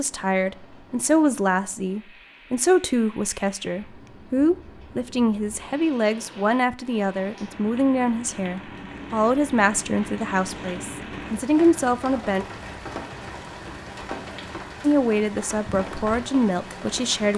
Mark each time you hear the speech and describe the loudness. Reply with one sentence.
The speech can be heard from 0.0 to 12.4 s, at a steady volume; and briefly from 14.8 to 17.3 s.